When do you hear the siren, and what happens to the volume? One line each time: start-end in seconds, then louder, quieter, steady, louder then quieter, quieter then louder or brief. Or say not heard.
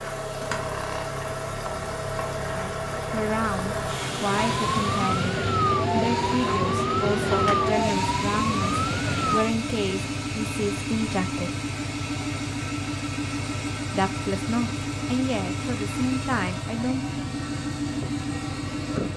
4.3-9.5 steady.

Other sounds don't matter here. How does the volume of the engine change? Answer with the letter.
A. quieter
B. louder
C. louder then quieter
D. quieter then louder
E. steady
E.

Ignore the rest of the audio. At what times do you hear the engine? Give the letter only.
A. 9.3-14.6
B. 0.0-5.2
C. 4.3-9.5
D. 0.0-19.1
D.